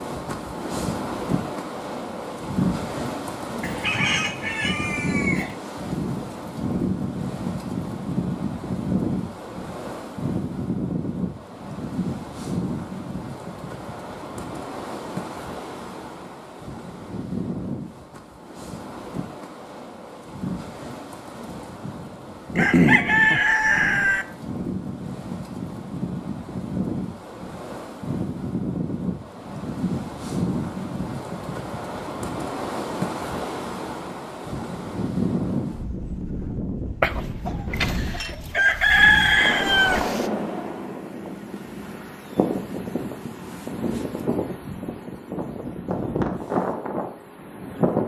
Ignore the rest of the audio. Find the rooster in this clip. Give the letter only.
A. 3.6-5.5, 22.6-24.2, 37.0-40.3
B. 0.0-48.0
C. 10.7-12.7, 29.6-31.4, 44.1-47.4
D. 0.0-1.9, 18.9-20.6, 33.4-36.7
A.